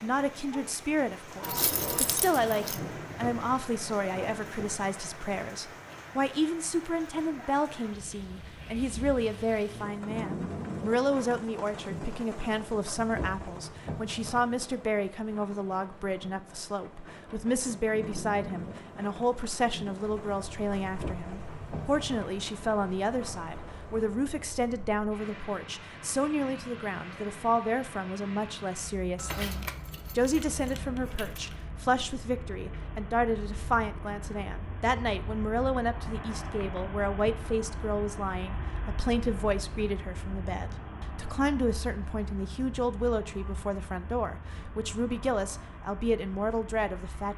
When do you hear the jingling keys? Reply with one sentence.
You can hear the jingling keys from 1.4 to 2.8 s and from 29.1 to 31.6 s.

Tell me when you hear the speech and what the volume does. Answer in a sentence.
The speech can be heard from 0.0 to 47.3 s, at a steady volume.